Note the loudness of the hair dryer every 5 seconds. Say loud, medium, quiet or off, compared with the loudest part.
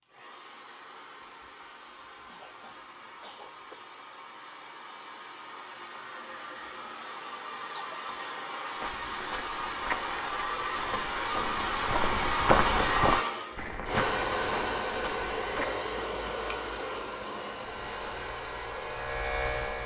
quiet, medium, loud, medium.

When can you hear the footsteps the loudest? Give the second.
13 s.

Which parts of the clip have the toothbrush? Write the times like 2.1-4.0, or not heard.
not heard.